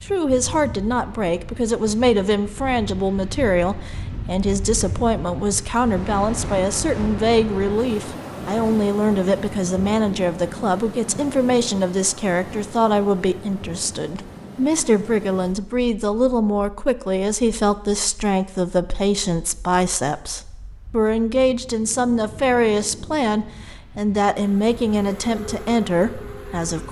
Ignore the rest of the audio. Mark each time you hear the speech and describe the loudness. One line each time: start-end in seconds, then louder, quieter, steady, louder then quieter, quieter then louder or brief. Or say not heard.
0.0-26.8 steady.